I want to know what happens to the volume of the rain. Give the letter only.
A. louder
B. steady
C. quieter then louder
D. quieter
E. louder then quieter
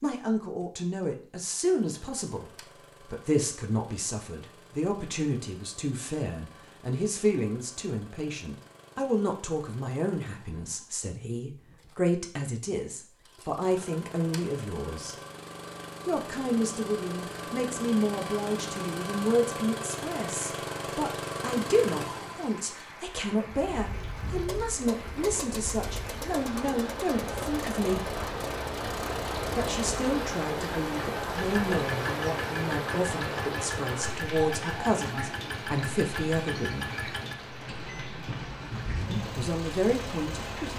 E.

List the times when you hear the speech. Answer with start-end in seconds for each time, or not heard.
0.0-15.2, 16.1-28.1, 29.6-37.0, 39.1-40.7.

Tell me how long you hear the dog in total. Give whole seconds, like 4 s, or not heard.
not heard.